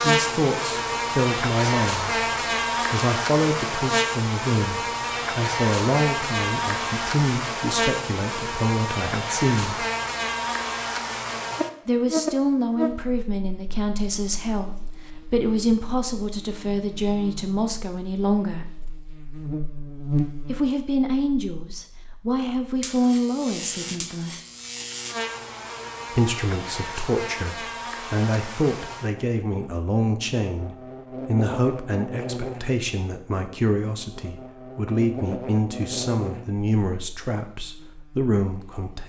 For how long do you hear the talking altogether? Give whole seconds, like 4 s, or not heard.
33 s.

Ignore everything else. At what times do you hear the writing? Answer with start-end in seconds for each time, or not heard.
not heard.